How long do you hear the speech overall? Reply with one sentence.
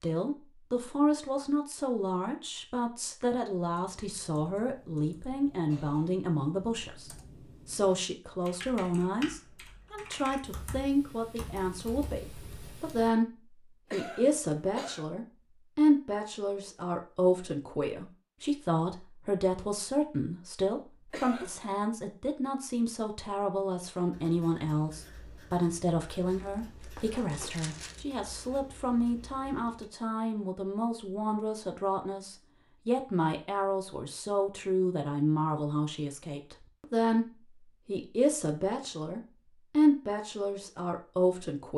You can hear the speech for 42 seconds altogether.